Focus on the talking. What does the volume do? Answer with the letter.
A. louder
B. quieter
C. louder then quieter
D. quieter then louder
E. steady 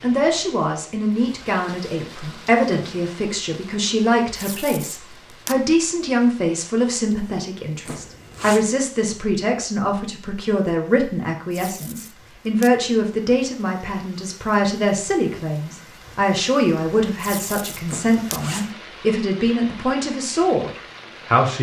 E.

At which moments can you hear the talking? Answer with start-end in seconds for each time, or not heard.
0.0-21.5.